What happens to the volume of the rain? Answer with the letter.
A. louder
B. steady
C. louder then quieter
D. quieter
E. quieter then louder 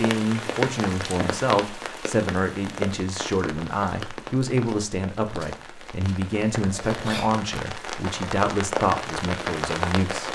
E.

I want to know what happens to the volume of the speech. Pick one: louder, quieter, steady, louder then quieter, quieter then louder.
steady.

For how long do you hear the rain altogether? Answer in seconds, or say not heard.
10 s.